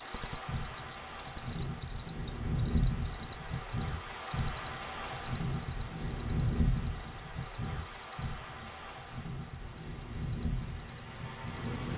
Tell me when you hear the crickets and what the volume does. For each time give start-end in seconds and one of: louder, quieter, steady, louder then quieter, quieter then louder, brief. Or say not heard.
0.0-11.9 quieter.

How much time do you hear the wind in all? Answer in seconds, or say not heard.
12 s.